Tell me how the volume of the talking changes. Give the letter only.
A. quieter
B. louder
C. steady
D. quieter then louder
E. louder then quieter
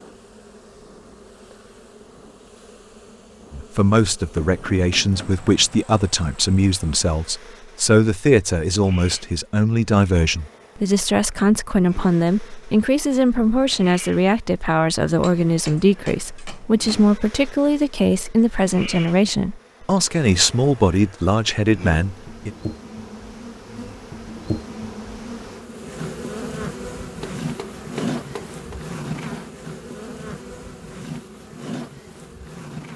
C.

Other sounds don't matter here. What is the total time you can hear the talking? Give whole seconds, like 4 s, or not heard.
19 s.